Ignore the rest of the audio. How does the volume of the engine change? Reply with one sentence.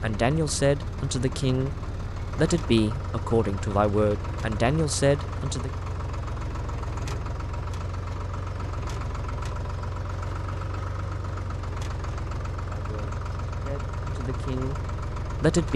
The loudness of the engine stays about the same.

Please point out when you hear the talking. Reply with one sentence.
The talking can be heard from 0.0 to 5.7 s and from 12.7 to 15.7 s.